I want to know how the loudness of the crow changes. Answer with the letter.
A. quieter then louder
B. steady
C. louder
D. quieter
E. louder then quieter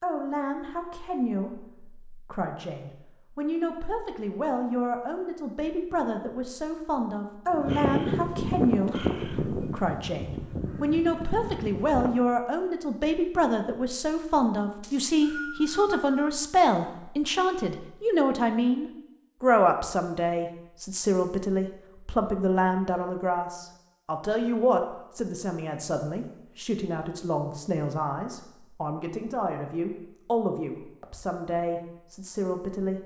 D.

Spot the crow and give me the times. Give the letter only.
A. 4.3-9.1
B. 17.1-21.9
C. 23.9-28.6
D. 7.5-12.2
D.